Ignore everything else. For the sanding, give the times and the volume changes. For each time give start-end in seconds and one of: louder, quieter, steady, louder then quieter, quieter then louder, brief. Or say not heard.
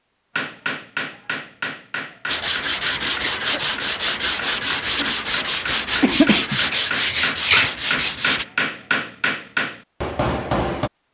2.2-8.4 steady.